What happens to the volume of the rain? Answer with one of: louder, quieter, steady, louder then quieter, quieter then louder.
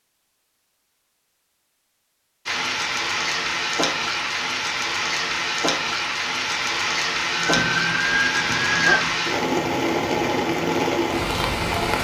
steady.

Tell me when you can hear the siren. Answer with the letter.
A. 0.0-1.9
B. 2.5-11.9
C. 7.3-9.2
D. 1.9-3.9
C.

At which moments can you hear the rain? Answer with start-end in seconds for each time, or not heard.
2.5-11.9.